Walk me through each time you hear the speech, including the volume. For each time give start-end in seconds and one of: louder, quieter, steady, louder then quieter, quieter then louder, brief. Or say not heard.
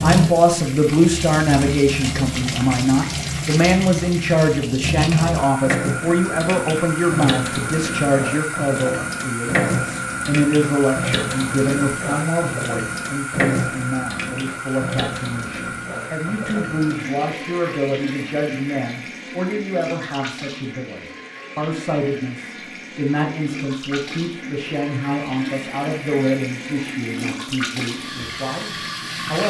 0.0-29.4 quieter.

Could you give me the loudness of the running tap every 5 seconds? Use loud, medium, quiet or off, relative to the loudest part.
loud, loud, loud, medium, medium, medium.